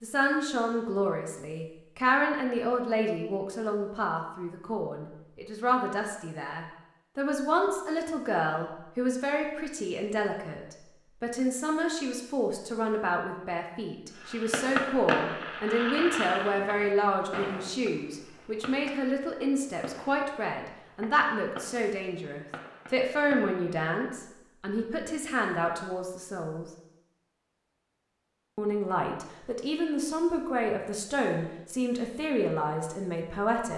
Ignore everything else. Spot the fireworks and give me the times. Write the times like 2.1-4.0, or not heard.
14.2-23.6.